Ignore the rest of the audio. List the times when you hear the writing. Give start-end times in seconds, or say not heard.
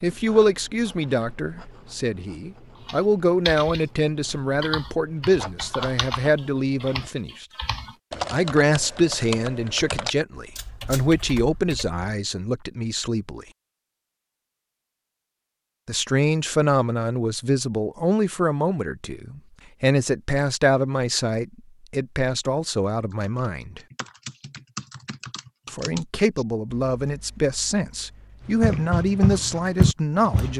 0.0-7.0, 28.4-30.5.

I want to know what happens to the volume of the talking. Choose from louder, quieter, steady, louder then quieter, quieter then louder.
steady.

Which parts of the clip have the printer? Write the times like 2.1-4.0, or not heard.
not heard.